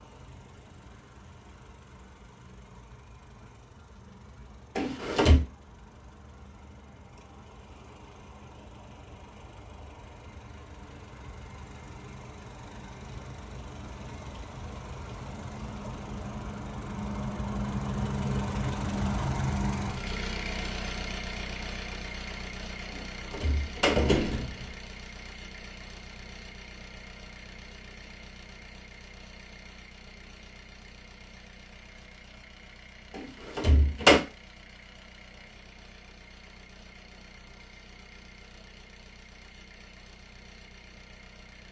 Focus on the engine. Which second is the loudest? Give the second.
19 s.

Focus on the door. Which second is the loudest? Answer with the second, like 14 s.
34 s.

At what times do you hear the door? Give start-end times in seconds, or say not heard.
4.8-5.5, 22.9-24.6, 33.1-34.2.